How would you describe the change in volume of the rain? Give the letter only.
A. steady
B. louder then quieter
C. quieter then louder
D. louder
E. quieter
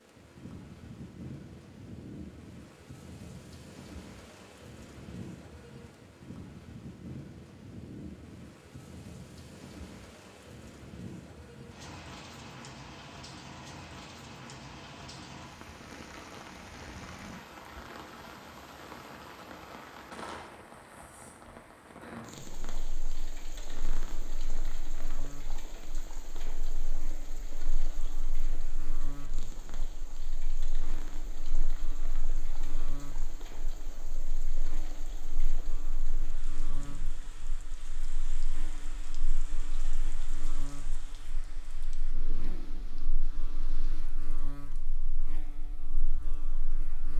E.